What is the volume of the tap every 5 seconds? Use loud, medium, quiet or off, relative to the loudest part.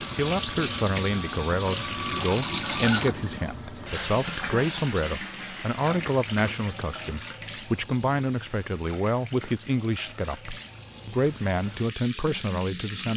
loud, medium, medium.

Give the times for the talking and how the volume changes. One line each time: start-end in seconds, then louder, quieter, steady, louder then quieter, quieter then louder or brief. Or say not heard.
0.1-13.1 steady.